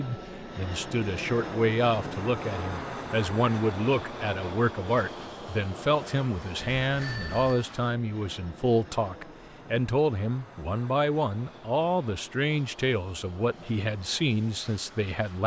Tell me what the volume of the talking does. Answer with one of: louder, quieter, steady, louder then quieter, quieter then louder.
steady.